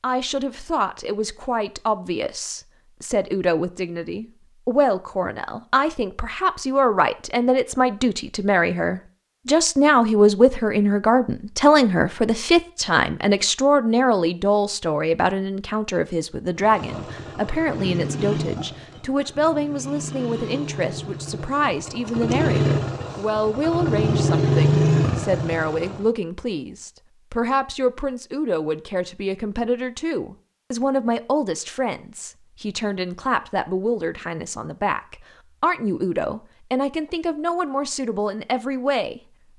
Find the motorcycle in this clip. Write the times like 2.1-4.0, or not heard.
16.6-26.1.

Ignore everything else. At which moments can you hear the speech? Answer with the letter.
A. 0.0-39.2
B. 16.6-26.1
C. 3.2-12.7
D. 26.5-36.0
A.